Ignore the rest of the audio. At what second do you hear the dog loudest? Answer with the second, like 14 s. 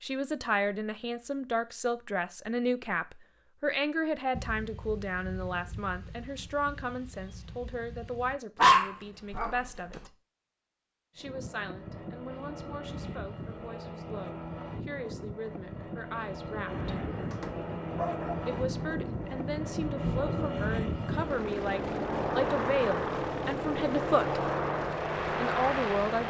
9 s.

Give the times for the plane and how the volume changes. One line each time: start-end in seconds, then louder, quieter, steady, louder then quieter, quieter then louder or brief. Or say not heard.
11.2-26.2 louder.